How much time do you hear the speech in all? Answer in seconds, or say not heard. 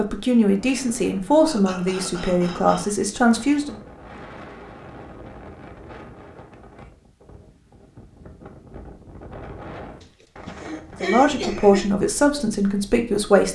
6 s.